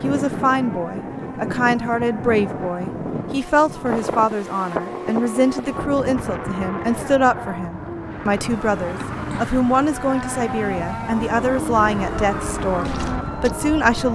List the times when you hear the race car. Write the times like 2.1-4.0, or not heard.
0.0-14.1.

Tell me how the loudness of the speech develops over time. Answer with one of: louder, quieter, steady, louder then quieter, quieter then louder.
steady.